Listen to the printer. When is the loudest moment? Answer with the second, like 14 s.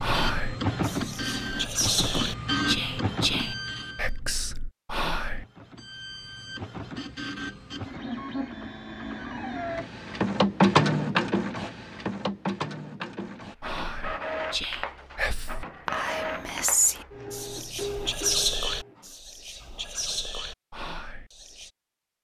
11 s.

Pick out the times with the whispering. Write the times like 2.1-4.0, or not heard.
0.0-5.5, 13.6-21.7.